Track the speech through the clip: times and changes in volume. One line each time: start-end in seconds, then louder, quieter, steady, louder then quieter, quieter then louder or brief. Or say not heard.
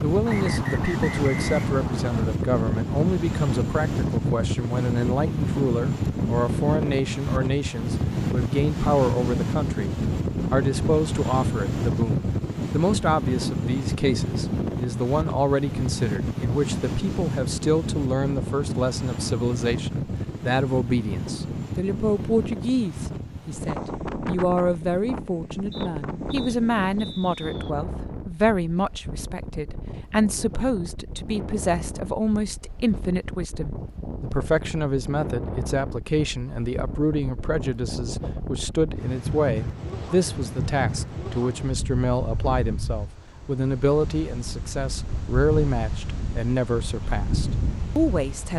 0.0-48.5 steady.